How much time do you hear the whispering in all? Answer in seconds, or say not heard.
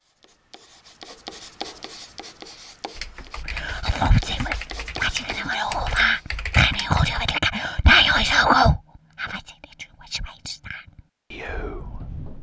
9 s.